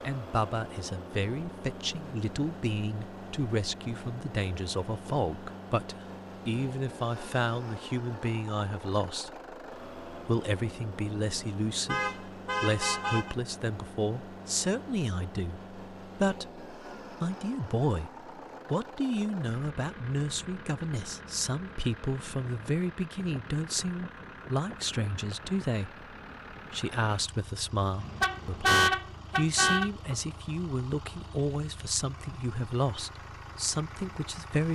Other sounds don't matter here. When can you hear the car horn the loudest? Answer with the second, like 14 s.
29 s.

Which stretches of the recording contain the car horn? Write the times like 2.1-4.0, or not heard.
11.8-13.3, 28.0-29.9.